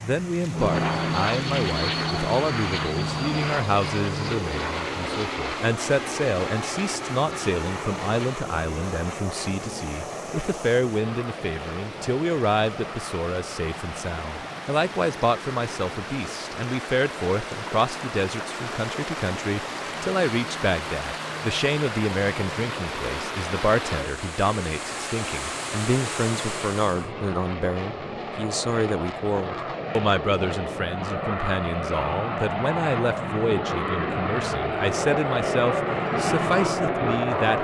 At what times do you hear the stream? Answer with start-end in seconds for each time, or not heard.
0.0-27.1.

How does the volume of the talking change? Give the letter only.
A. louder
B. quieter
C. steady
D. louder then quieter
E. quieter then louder
C.